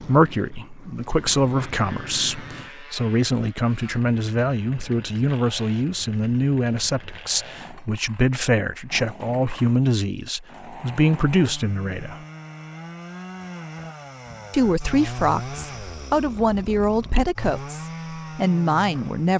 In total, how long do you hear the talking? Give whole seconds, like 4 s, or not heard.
17 s.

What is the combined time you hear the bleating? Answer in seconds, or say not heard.
not heard.